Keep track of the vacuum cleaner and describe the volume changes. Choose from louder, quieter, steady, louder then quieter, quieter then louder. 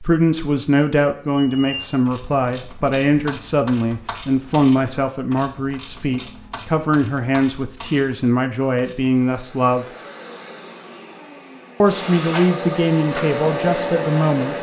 louder.